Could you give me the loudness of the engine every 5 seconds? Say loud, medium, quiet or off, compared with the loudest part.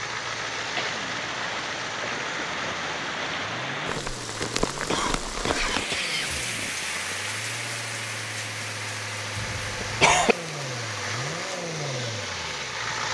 loud, medium, loud.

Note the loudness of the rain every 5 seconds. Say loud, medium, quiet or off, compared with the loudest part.
loud, loud, medium.